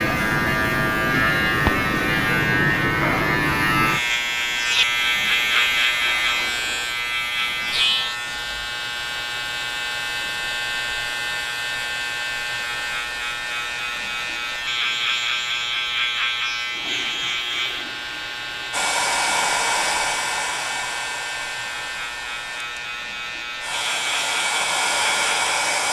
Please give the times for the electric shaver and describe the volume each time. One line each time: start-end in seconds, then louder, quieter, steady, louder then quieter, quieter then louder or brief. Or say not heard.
0.0-25.8 quieter.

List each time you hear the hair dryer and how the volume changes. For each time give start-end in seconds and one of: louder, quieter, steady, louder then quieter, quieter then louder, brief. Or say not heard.
18.7-25.8 quieter then louder.